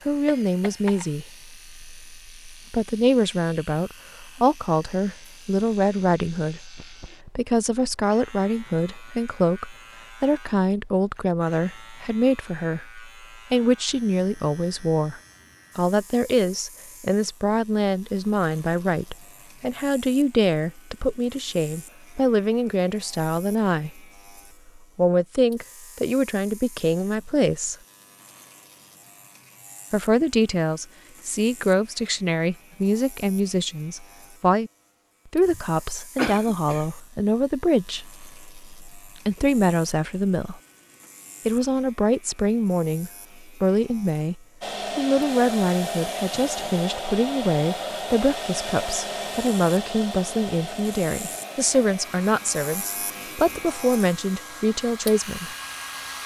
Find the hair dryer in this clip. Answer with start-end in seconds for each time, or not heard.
44.6-56.2.